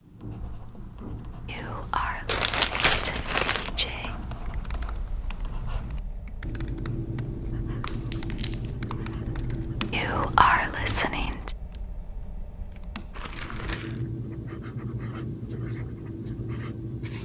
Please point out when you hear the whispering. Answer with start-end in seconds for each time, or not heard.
1.4-4.1, 9.9-11.6.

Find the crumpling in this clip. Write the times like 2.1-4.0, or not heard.
2.2-3.7, 7.8-8.7, 13.1-14.1.